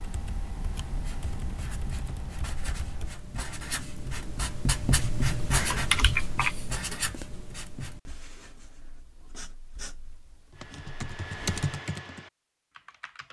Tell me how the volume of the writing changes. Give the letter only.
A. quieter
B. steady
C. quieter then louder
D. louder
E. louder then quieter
E.